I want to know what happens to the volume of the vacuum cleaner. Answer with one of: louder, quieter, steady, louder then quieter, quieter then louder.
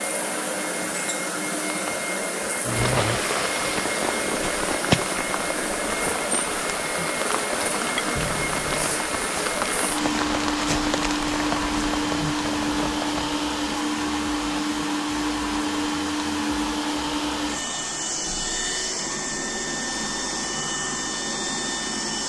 steady.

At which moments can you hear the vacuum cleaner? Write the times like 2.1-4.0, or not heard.
0.0-22.2.